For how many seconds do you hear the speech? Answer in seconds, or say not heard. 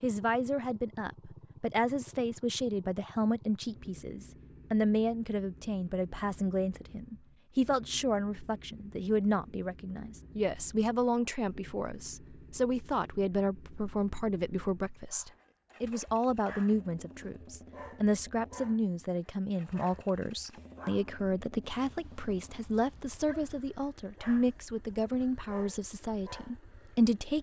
27 s.